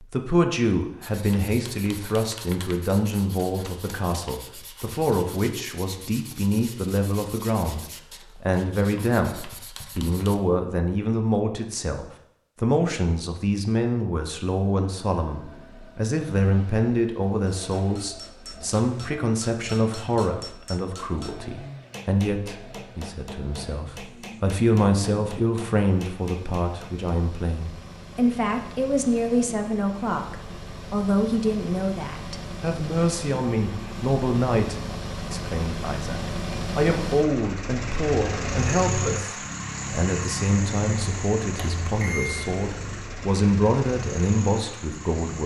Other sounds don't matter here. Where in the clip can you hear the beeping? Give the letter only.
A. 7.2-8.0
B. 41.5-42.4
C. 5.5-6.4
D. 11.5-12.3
B.